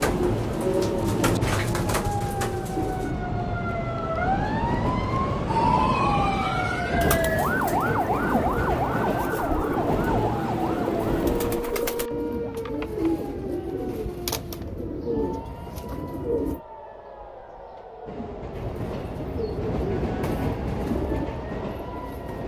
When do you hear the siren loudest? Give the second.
6 s.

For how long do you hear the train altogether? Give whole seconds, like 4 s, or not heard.
16 s.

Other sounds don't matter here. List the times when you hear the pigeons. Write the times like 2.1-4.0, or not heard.
0.0-3.2, 7.0-16.6, 18.6-22.4.